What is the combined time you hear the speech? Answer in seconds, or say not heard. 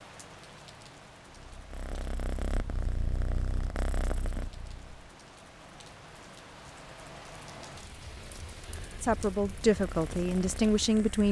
2 s.